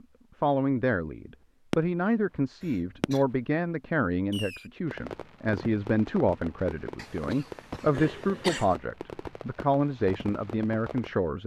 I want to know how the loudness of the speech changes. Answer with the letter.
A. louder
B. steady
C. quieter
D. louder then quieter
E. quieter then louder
B.